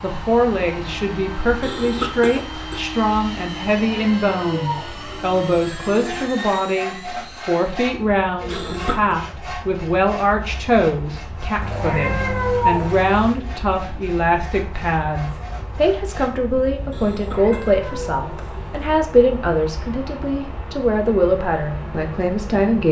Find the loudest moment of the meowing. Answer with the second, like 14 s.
13 s.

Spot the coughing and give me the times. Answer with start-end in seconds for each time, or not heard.
1.6-2.9, 8.5-9.2, 16.9-18.9.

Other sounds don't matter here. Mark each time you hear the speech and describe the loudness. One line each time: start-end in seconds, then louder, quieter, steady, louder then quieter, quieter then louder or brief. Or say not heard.
0.0-22.8 steady.